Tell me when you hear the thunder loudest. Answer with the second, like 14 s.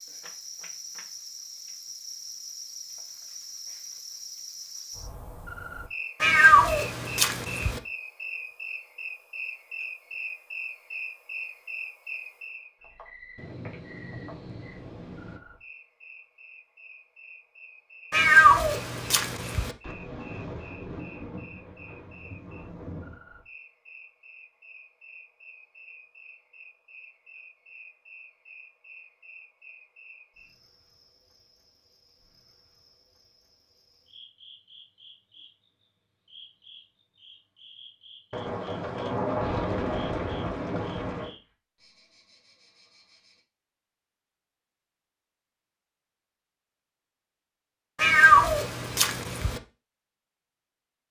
39 s.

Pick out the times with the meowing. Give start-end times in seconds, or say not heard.
6.2-7.8, 18.1-19.7, 48.0-49.6.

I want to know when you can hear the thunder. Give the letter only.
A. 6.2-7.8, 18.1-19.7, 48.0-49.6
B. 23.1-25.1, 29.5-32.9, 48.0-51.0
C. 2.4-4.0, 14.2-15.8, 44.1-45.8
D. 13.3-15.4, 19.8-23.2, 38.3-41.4
D.